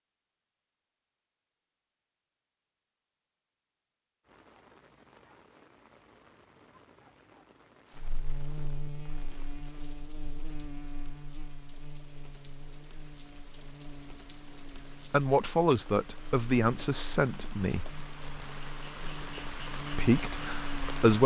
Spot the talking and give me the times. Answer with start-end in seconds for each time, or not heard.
15.1-17.9, 19.9-21.2.